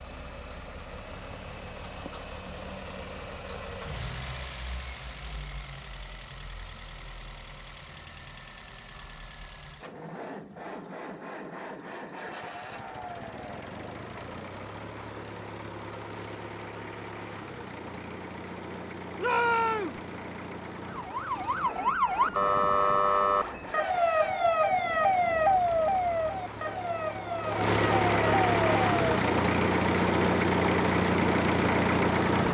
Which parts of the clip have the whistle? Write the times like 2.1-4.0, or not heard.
not heard.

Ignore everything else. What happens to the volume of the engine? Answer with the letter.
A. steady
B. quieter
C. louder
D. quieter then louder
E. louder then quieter
C.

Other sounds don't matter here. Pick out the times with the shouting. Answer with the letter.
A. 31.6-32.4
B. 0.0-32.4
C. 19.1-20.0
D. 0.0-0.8
C.